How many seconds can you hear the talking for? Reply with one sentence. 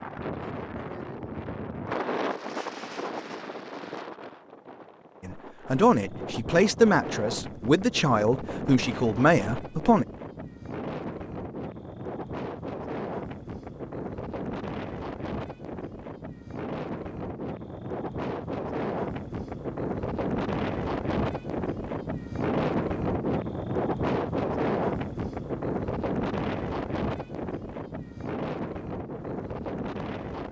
The talking can be heard for 5 seconds in total.